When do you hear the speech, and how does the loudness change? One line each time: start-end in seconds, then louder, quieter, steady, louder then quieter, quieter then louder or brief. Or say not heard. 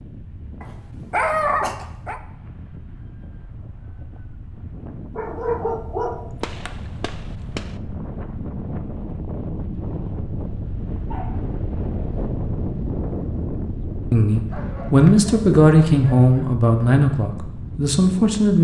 14.1-18.5 quieter.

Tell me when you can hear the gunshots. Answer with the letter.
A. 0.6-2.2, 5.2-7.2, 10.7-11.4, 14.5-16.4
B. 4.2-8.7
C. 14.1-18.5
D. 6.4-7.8
D.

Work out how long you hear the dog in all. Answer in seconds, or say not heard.
6 s.